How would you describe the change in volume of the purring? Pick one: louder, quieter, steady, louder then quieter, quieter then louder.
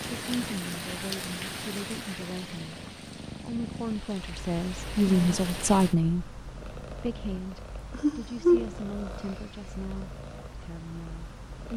louder then quieter.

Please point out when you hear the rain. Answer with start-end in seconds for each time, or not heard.
0.0-6.0.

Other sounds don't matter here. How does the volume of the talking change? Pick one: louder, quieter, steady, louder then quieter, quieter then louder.
louder then quieter.